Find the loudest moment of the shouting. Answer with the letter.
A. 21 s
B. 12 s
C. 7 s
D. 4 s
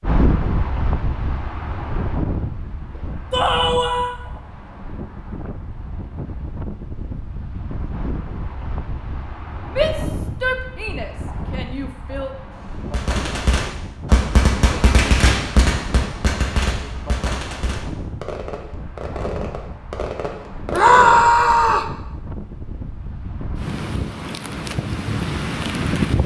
A.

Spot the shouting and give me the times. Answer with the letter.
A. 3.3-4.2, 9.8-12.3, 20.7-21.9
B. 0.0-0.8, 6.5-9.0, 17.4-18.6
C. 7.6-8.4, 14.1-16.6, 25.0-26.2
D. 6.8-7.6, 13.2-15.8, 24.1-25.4
A.